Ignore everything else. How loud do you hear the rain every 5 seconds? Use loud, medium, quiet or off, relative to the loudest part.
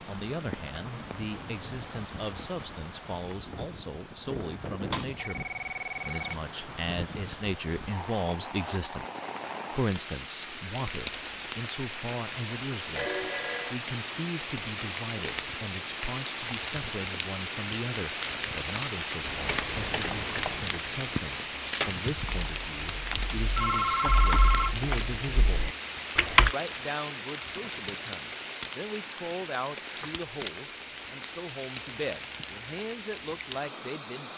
medium, medium, loud, loud, loud, loud, medium.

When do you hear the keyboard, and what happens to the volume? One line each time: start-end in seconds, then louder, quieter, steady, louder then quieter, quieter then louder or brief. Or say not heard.
19.2-26.6 quieter then louder.